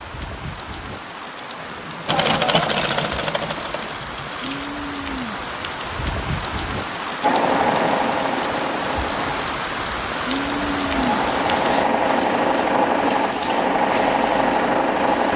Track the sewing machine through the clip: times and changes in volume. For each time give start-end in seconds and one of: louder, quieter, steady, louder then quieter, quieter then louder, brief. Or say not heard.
2.0-4.7 brief
7.2-15.3 quieter then louder.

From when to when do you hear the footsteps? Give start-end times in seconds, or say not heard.
not heard.